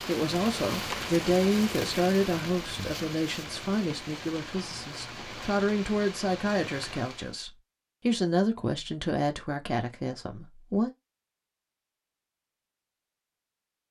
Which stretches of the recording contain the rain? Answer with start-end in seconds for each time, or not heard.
0.0-7.4.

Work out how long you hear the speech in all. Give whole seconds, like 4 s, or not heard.
11 s.